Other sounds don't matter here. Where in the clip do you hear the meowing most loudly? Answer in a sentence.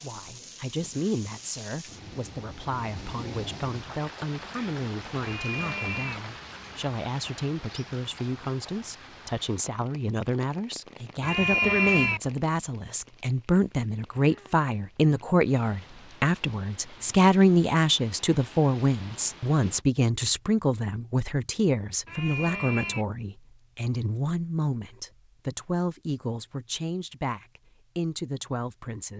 The volume of the meowing peaks at 12 seconds.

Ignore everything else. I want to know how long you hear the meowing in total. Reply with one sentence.
You can hear the meowing for 3 seconds altogether.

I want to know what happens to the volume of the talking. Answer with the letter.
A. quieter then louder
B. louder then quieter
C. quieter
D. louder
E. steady
B.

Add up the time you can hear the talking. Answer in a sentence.
The talking can be heard for 29 seconds in total.